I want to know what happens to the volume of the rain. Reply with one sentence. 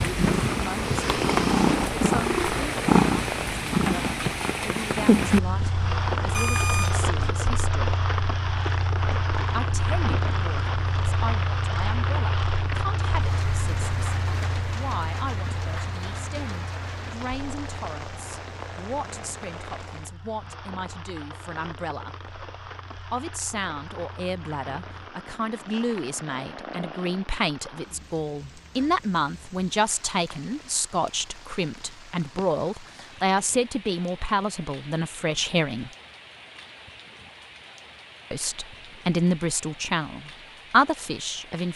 The volume of the rain goes down.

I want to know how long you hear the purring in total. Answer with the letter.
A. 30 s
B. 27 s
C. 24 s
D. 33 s
B.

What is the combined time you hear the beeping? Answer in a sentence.
You can hear the beeping for 2 seconds altogether.